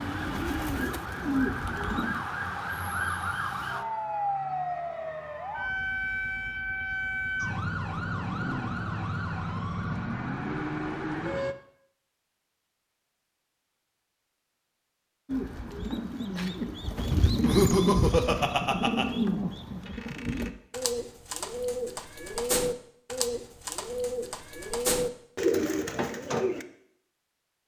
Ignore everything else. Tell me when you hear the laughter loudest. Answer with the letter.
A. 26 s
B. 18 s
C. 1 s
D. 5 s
B.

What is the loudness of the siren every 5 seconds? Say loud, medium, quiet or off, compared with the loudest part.
loud, loud, loud, off, off, off.